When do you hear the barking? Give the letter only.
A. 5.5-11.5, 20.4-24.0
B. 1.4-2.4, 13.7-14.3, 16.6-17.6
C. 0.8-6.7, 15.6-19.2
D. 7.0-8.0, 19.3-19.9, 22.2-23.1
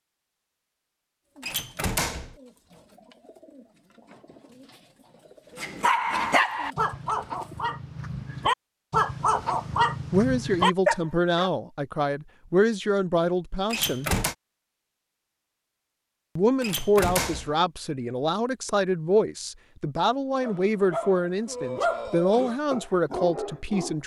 A.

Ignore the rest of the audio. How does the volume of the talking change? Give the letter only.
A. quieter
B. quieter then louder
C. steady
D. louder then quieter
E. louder
C.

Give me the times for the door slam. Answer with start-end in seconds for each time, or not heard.
1.4-2.4, 13.7-14.3, 16.6-17.6.